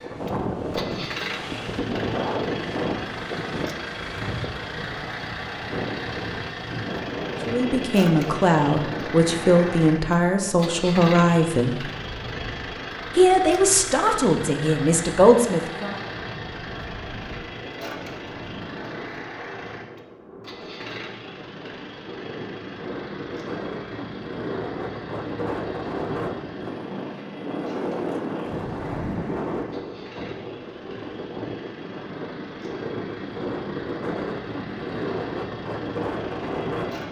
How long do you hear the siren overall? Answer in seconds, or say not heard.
not heard.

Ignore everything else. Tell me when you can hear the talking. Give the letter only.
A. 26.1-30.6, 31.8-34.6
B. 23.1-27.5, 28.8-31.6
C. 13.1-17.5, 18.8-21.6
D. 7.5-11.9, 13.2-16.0
D.